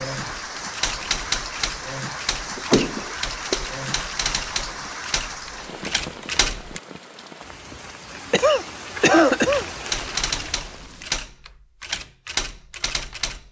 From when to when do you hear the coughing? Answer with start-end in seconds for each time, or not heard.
2.5-3.6, 8.3-9.7.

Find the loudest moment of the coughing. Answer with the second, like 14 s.
9 s.